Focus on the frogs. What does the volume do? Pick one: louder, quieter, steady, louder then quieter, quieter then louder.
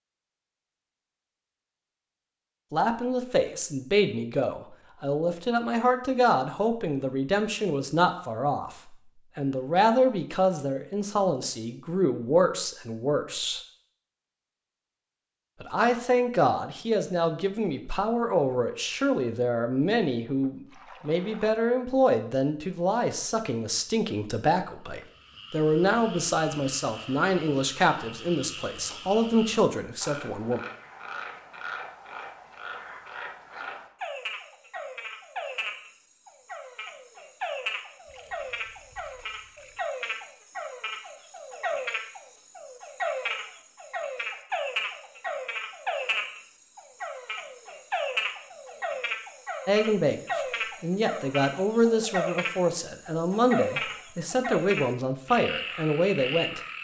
louder.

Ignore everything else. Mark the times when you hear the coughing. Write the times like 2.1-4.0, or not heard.
not heard.